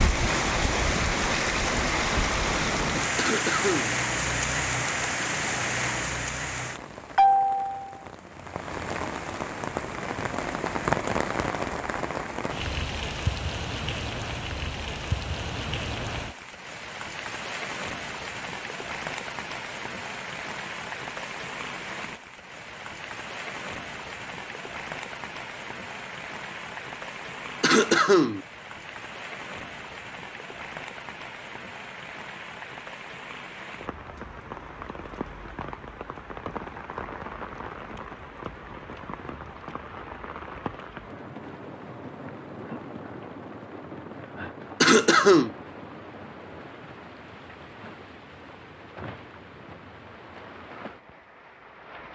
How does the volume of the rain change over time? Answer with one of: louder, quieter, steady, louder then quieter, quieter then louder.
quieter.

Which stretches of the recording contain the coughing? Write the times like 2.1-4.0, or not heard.
3.1-4.0, 27.6-28.4, 44.8-45.5.